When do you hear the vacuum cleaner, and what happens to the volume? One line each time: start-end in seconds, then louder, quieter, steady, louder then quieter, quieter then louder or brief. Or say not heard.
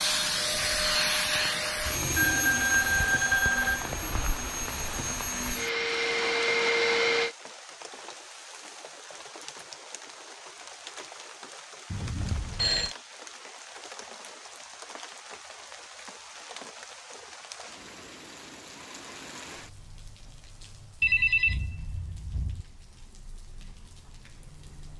0.0-7.3 quieter then louder.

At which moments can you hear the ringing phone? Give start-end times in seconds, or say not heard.
2.1-3.9, 11.9-12.9, 21.0-22.6.